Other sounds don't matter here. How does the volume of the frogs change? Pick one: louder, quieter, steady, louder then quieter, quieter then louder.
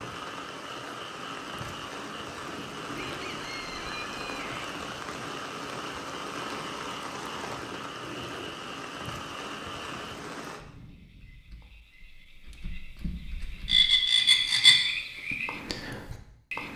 quieter then louder.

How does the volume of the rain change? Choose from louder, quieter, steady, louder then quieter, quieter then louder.
steady.